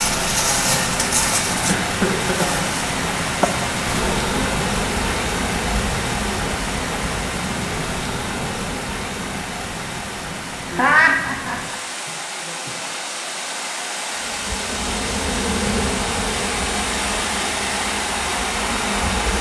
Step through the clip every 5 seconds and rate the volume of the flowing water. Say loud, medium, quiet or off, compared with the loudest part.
loud, loud, medium, loud.